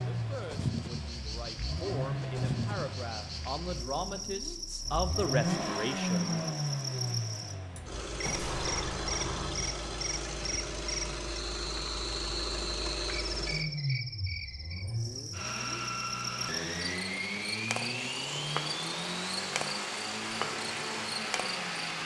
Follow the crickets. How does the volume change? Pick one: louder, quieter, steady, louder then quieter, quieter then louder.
steady.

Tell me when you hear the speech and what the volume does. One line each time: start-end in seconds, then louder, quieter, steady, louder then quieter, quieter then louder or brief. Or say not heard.
0.1-6.5 louder.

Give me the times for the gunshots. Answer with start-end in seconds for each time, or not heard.
7.8-9.5.